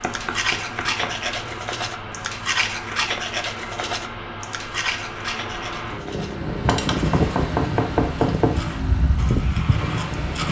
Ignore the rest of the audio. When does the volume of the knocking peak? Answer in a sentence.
The loudest moment of the knocking is at 8 seconds.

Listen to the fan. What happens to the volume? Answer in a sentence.
The loudness of the fan goes up.